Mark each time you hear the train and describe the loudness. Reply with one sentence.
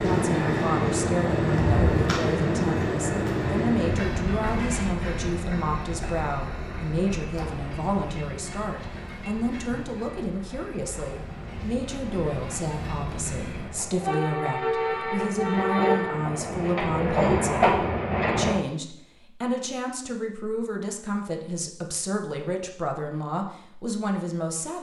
The train can be heard from 0.0 to 18.6 s, getting quieter then louder.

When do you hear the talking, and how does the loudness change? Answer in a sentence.
The talking can be heard from 0.0 to 24.7 s, at a steady volume.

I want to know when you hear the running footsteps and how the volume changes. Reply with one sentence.
You can't hear the running footsteps here.